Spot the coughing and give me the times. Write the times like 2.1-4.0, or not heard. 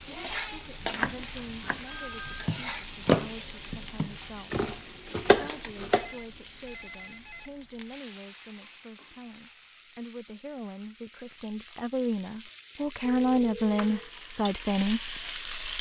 not heard.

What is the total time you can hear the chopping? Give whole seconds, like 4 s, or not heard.
6 s.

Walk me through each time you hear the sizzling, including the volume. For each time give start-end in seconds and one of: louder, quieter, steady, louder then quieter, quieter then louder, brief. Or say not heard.
0.0-15.7 quieter then louder.